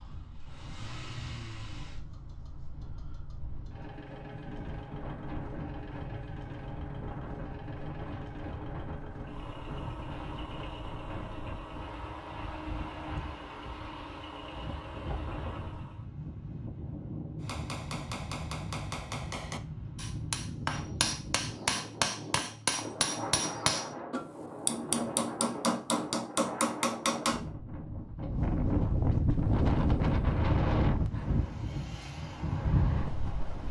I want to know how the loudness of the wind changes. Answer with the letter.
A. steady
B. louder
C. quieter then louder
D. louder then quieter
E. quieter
B.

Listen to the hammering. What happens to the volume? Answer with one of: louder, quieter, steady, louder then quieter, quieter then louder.
louder.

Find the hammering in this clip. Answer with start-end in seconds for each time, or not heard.
17.4-27.4.